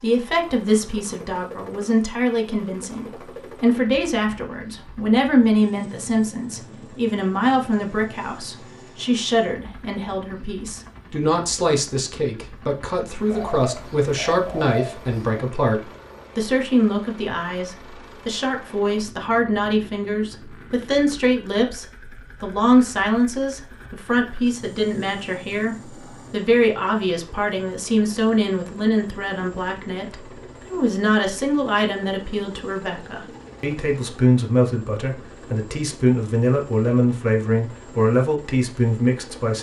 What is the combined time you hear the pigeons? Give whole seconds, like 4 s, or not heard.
2 s.